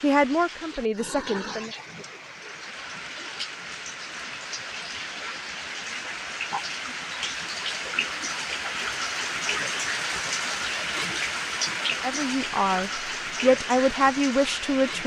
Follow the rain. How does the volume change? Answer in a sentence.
The volume of the rain goes up.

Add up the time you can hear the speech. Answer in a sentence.
You can hear the speech for 5 seconds altogether.